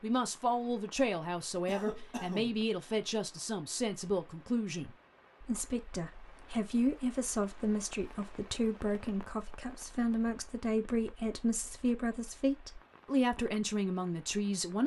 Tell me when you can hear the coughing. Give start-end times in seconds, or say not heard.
1.6-2.6.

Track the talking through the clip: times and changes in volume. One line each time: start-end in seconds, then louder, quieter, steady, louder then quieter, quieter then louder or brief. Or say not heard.
0.0-14.8 steady.